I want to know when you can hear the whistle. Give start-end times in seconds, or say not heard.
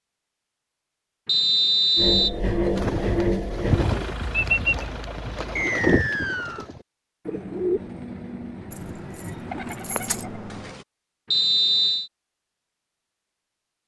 1.2-2.3, 5.5-6.7, 11.3-12.1.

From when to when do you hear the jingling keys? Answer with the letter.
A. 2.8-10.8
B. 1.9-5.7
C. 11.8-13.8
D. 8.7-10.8
D.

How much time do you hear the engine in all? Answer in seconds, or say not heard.
4 s.